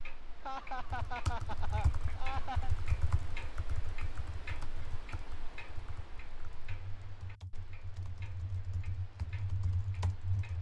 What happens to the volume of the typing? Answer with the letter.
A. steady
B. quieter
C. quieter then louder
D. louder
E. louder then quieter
C.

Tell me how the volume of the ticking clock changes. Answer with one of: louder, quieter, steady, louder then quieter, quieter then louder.
quieter.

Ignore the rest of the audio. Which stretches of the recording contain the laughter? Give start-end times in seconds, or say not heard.
0.4-2.7.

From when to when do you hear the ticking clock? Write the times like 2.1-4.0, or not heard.
0.0-10.5.